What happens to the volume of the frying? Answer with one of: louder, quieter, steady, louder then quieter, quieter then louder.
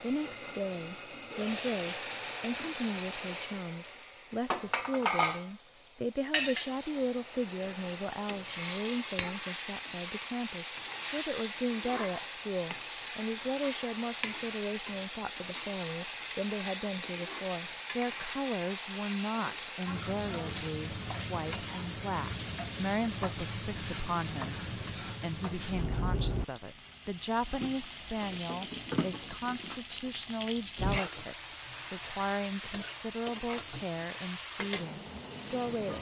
steady.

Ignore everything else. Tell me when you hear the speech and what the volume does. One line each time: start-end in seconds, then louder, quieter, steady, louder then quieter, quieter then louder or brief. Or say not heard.
0.0-35.9 steady.